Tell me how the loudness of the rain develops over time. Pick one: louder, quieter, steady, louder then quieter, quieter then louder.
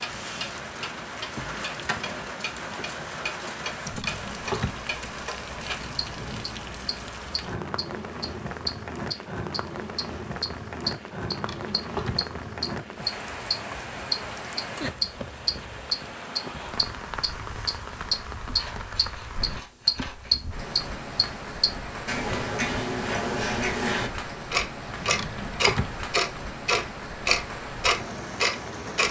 steady.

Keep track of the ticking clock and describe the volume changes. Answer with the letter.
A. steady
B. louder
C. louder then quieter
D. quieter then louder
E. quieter
B.